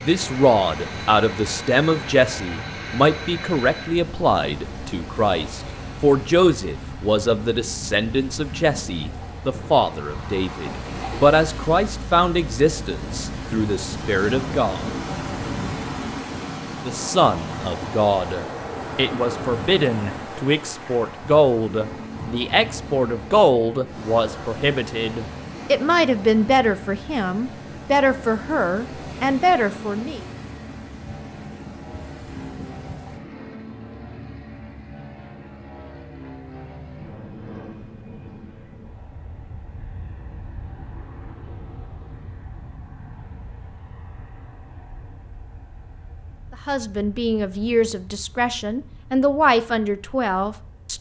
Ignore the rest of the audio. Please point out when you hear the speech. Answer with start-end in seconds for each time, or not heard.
0.0-14.8, 16.9-30.2, 46.6-50.9.